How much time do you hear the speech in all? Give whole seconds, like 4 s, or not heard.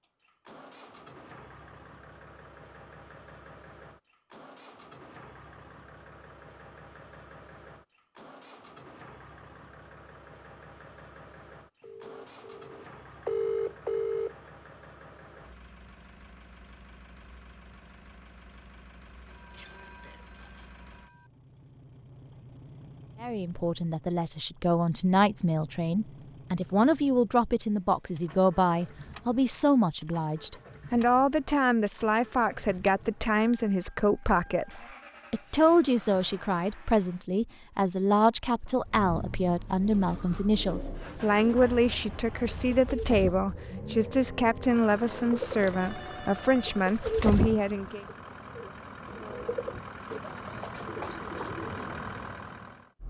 25 s.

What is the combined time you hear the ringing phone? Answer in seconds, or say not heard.
6 s.